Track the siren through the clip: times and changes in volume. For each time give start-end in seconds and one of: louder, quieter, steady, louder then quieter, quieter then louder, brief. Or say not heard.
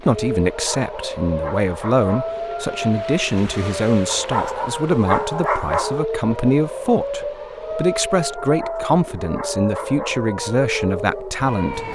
0.0-11.9 steady.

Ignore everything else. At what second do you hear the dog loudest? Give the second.
6 s.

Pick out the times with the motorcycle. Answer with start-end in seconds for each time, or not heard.
not heard.